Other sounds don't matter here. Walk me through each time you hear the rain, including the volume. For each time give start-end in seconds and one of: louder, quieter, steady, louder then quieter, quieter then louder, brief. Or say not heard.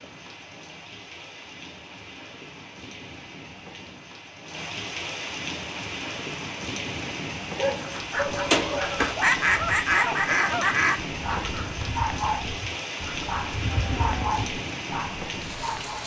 0.0-16.0 louder.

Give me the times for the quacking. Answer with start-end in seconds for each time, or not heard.
7.8-14.5.